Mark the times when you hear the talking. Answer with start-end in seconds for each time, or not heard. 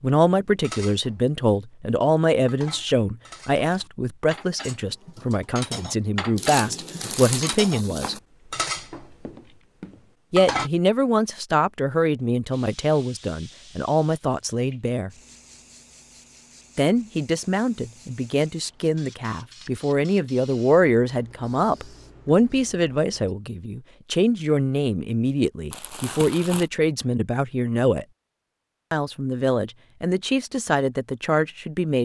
0.0-8.2, 10.3-15.1, 16.8-28.1, 28.9-31.9.